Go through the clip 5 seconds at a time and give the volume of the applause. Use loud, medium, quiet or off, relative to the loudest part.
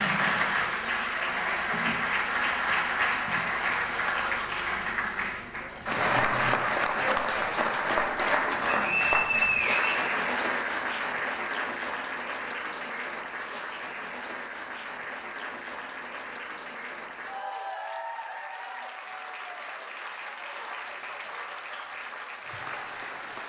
loud, loud, medium, medium, medium.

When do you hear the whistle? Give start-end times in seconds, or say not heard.
8.7-10.1.